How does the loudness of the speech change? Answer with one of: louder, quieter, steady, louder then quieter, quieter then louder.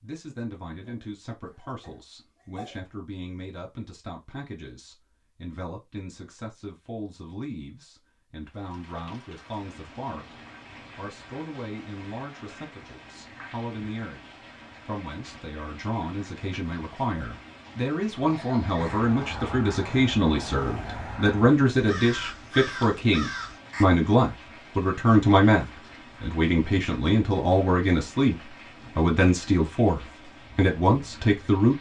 louder.